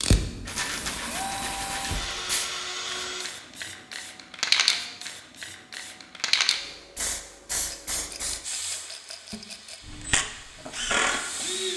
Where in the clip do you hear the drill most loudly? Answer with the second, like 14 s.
11 s.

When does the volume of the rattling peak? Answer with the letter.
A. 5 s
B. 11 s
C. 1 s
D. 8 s
C.